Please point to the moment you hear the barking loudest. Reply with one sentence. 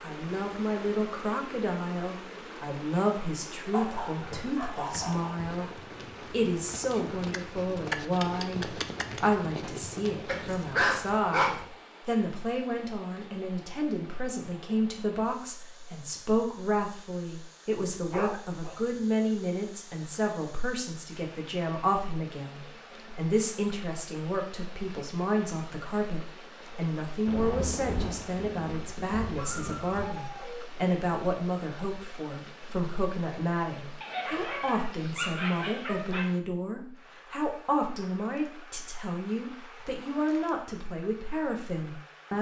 The volume of the barking peaks at 11 seconds.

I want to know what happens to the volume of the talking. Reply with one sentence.
The volume of the talking stays about the same.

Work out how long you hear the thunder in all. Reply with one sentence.
You can hear the thunder for 3 seconds altogether.